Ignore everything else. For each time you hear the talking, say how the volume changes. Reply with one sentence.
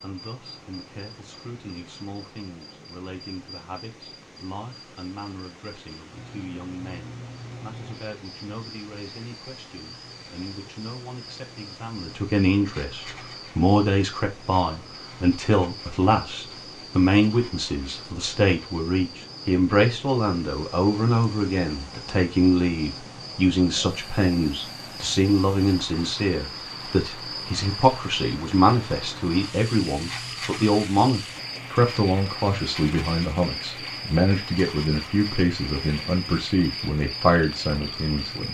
The talking can be heard from 0.0 to 38.5 s, getting louder.